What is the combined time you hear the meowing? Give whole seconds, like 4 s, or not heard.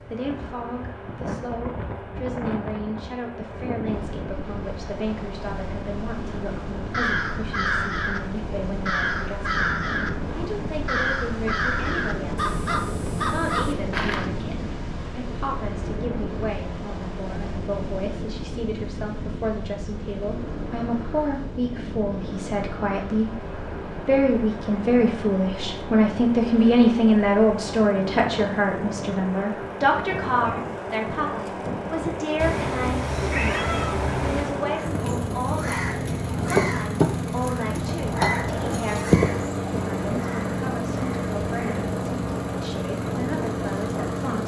2 s.